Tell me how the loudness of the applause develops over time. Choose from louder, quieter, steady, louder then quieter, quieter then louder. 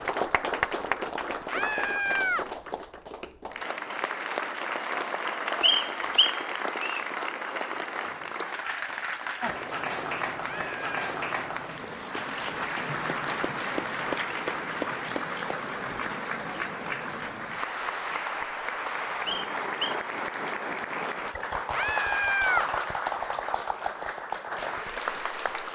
steady.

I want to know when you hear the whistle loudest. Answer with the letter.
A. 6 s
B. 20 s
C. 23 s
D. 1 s
A.